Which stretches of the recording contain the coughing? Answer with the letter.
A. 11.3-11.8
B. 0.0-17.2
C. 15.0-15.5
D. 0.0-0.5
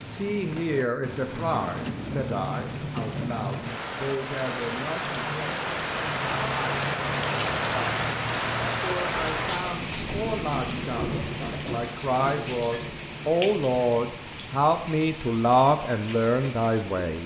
A.